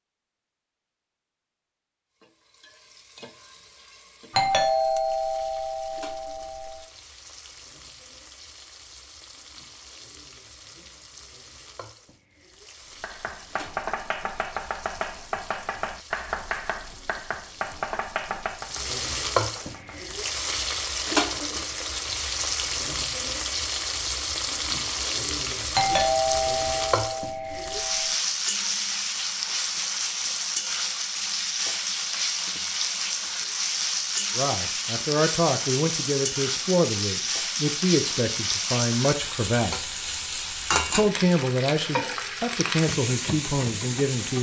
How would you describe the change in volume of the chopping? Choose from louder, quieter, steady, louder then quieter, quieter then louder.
quieter.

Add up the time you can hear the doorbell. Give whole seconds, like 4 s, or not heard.
5 s.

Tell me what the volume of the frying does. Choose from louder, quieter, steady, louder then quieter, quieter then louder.
louder.